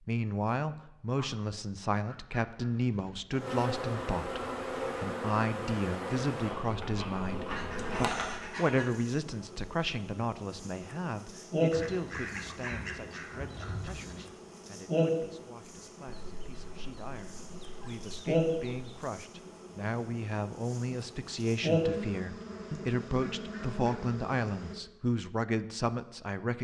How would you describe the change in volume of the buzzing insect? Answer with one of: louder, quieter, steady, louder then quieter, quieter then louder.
steady.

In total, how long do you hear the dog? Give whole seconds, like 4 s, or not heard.
not heard.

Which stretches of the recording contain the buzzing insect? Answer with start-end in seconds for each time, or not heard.
3.3-24.8.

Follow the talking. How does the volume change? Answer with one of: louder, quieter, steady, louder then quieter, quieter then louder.
quieter then louder.